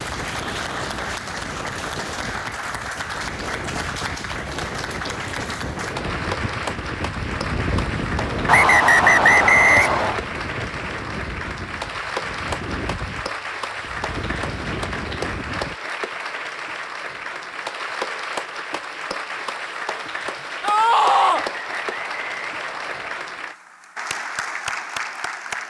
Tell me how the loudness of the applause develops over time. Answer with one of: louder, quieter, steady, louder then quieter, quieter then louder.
steady.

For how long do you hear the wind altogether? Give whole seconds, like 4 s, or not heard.
16 s.